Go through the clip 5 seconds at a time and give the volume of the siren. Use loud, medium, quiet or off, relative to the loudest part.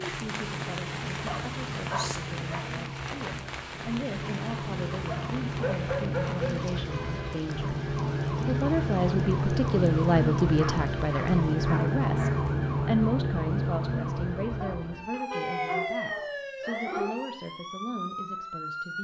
medium, loud, loud, medium.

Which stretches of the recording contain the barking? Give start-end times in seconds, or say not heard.
1.2-2.6, 5.0-6.5, 10.5-12.6, 14.6-17.1.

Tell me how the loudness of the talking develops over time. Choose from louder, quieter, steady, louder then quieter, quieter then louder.
louder then quieter.